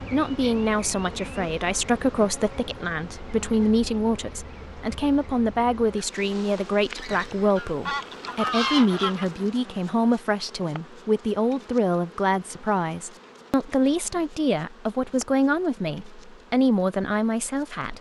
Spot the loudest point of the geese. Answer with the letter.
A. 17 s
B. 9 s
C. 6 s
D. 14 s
B.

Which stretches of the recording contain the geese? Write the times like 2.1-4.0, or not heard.
7.0-9.4.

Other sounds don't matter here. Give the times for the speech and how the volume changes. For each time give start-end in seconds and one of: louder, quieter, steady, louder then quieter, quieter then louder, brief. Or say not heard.
0.0-17.9 steady.